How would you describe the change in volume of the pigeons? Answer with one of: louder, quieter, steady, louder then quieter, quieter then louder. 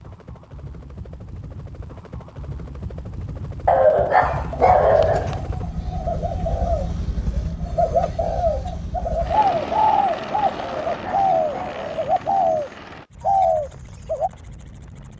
louder.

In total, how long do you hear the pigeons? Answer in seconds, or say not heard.
10 s.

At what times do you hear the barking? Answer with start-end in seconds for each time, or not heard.
3.6-5.4, 10.6-12.1.